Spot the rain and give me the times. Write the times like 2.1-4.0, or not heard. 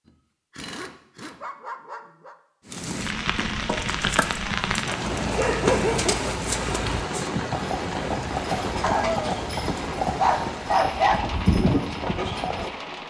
2.6-13.0.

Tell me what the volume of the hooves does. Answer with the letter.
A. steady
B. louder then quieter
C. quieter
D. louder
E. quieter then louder
D.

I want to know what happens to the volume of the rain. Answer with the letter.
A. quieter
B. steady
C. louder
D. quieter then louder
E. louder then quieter
A.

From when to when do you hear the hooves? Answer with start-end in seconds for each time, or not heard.
2.7-12.7.